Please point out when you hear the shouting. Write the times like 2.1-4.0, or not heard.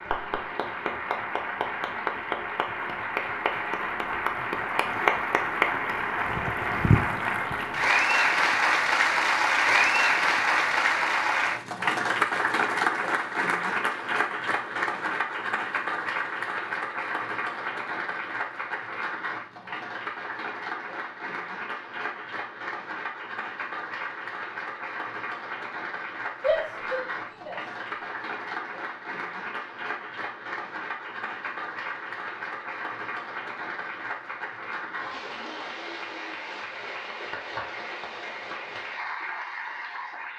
26.4-28.1.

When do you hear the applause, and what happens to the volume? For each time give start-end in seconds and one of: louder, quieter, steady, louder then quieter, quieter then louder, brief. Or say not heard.
0.0-40.3 quieter.